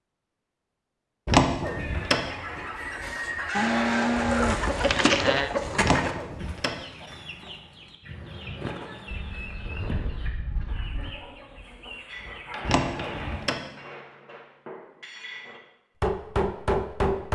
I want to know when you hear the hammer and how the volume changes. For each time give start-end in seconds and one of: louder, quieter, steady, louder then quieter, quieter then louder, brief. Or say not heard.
12.1-17.2 quieter then louder.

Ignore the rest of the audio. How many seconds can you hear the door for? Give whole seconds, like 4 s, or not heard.
3 s.